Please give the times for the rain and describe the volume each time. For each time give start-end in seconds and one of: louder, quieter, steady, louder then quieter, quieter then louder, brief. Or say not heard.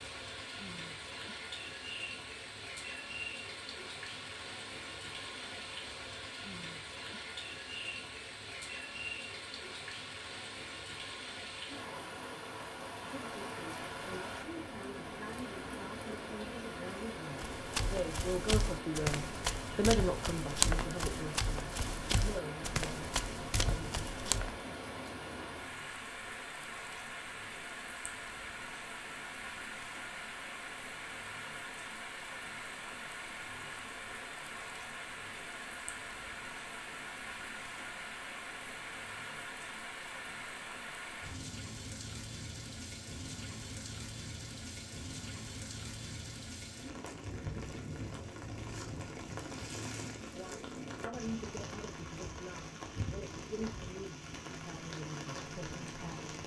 0.0-56.4 steady.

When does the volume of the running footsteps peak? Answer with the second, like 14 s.
21 s.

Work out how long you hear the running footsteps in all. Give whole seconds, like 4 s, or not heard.
7 s.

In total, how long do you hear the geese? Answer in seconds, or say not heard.
not heard.